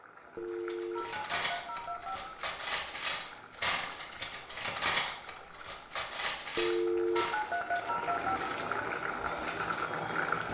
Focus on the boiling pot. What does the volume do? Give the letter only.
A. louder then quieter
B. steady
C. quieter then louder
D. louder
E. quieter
D.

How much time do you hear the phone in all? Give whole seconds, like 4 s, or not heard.
4 s.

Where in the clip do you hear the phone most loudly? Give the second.
7 s.